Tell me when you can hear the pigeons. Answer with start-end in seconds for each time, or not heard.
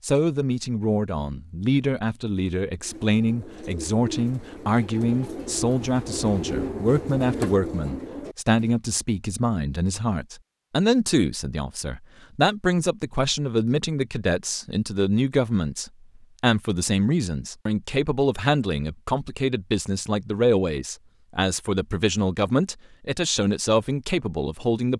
2.8-8.8.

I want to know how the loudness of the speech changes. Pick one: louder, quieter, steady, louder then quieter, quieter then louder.
steady.